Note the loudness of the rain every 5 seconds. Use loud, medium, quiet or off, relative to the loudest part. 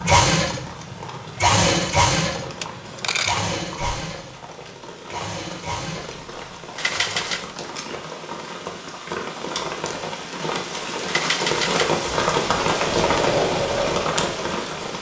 quiet, medium, loud.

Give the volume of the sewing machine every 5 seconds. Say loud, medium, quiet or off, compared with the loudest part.
loud, medium, loud.